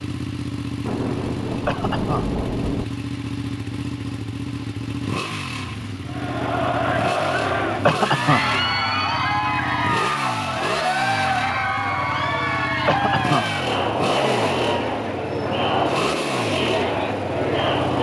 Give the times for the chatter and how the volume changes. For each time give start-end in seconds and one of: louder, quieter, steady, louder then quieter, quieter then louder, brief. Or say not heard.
6.0-17.9 steady.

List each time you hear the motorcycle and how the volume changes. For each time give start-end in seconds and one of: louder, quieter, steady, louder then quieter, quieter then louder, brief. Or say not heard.
0.0-17.9 steady.